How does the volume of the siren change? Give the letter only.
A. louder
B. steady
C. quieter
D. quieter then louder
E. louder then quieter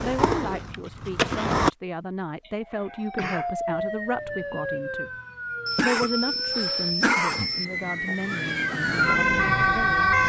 D.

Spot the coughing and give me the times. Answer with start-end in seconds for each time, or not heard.
2.5-3.5, 5.7-7.7.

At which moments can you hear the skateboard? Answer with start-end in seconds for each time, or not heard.
0.0-1.7.